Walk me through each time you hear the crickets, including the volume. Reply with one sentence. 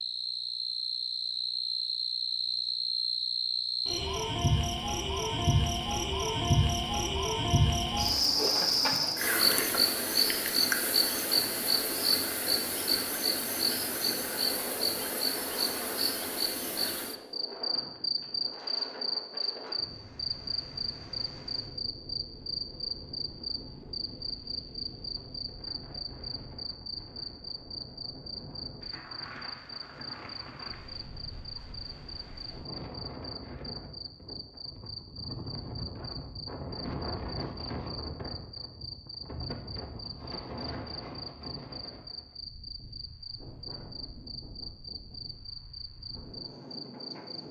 The crickets can be heard from 0.0 to 47.4 s, getting quieter.